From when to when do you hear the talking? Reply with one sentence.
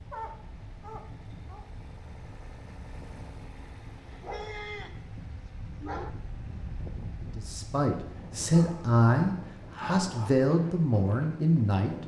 The talking can be heard from 7.3 to 12.0 s.